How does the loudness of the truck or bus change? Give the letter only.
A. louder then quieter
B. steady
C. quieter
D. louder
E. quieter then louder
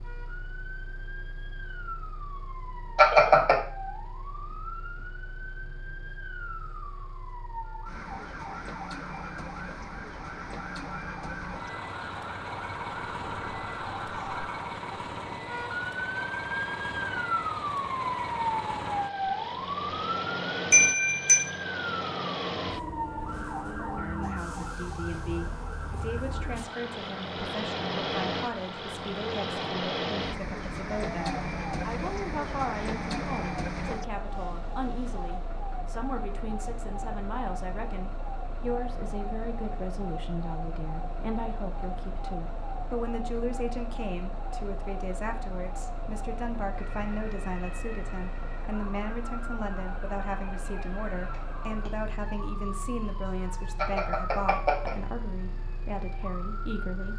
A.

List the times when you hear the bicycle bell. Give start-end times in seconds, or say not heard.
3.0-3.6, 20.7-21.4, 53.8-55.0.